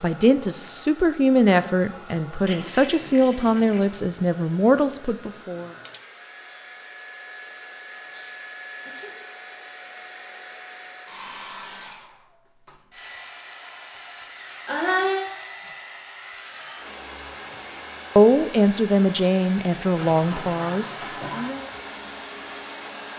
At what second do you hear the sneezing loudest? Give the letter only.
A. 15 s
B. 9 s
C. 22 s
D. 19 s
A.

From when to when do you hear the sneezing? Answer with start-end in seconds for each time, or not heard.
8.0-9.2, 14.7-15.2.